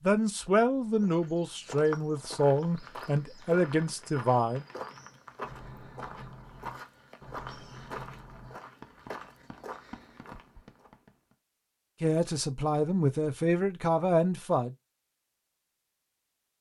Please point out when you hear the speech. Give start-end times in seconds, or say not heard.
0.0-4.7, 12.0-14.8.